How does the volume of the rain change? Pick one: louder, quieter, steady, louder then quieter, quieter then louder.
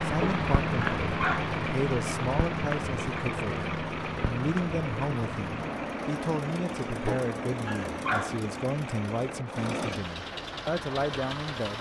quieter.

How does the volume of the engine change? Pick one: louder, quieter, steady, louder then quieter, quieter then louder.
steady.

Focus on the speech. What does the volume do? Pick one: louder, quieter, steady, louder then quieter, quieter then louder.
steady.